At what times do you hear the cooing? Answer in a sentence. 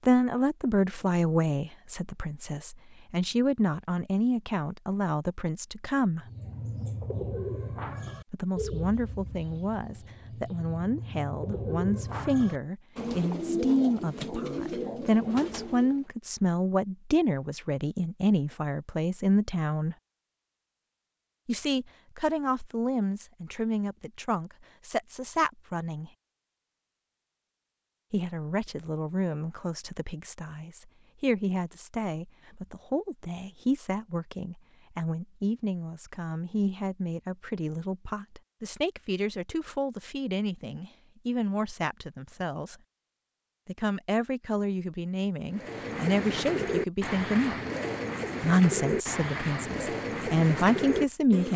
The cooing can be heard from 6.2 to 16.1 s and from 45.5 to 51.5 s.